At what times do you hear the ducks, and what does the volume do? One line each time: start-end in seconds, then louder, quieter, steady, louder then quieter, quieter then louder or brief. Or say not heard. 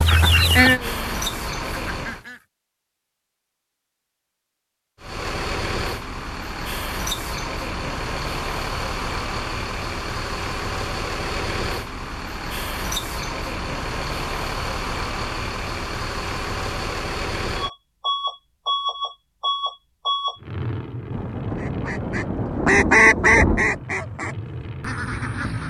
0.0-2.5 brief
21.6-25.6 louder then quieter.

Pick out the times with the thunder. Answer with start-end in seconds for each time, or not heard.
21.1-23.9.